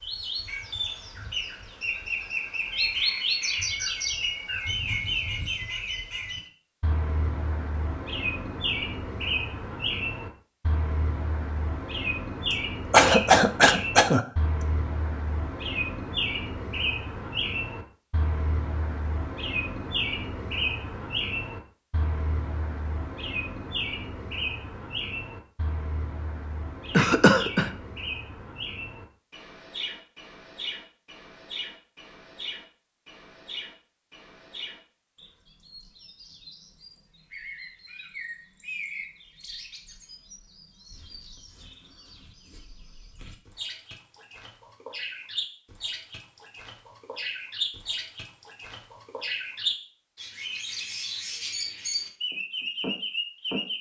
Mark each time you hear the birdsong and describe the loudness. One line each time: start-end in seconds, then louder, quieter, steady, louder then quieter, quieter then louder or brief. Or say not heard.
0.0-53.7 quieter then louder.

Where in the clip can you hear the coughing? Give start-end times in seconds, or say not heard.
12.5-14.7, 26.9-27.7.